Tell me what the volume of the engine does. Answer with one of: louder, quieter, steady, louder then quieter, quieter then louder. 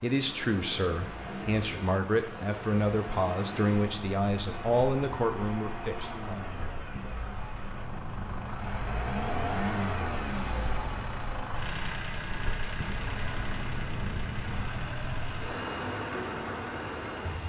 louder then quieter.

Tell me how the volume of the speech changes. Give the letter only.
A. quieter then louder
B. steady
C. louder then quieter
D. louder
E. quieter
B.